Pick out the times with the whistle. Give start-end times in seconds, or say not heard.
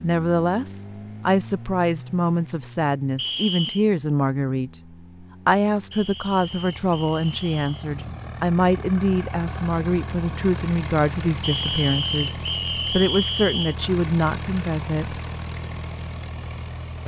3.1-3.9, 5.9-7.9, 11.4-13.8.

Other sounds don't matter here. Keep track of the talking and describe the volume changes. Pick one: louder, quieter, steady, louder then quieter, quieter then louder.
steady.